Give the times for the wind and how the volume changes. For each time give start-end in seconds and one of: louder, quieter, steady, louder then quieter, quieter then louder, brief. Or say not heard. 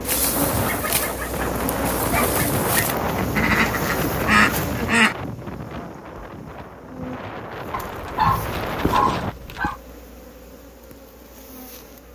0.0-9.3 quieter then louder.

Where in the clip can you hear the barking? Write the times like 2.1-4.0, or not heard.
0.1-3.0, 7.7-9.8.